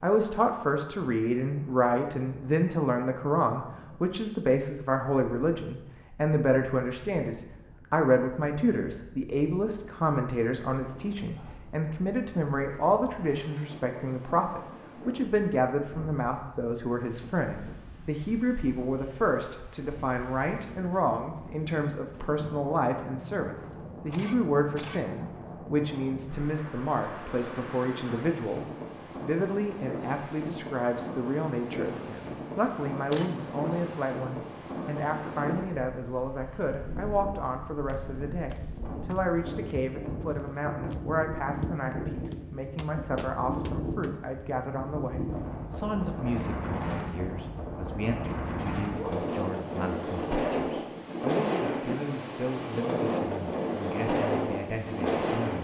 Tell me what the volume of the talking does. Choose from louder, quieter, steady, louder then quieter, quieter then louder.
quieter.